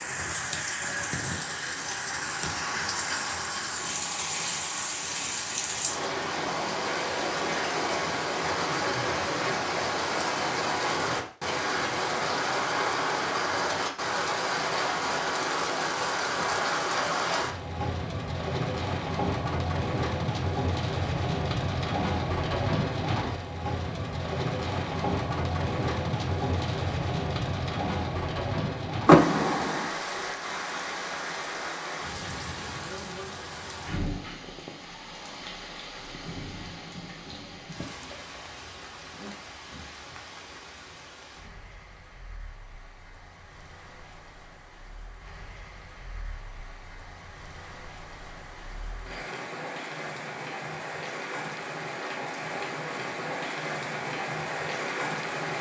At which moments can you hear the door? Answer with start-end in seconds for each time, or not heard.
29.1-29.9.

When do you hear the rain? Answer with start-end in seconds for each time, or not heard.
0.0-55.5.